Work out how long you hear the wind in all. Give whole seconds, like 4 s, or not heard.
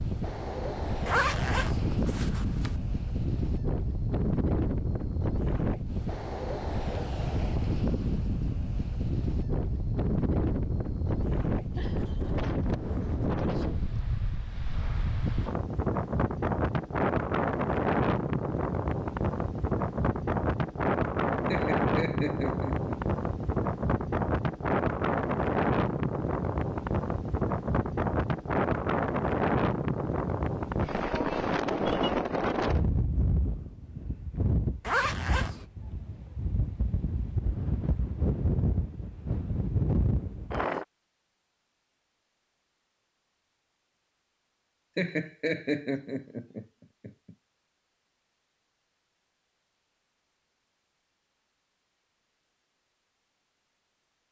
41 s.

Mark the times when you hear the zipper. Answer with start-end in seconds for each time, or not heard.
1.1-2.8, 34.8-35.6.